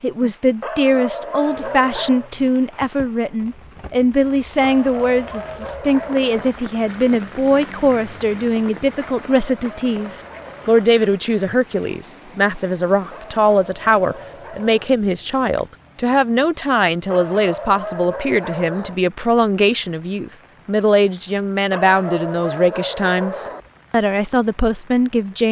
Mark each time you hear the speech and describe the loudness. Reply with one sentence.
The speech can be heard from 0.0 to 25.4 s, at a steady volume.